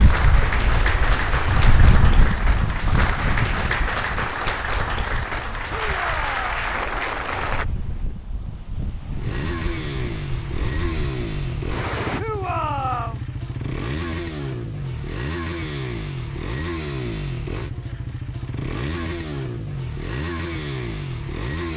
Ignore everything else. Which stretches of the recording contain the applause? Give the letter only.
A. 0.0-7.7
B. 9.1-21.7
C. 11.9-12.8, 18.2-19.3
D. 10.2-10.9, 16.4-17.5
A.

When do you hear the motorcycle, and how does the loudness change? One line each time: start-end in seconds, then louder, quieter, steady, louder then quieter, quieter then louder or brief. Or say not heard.
9.1-21.7 steady.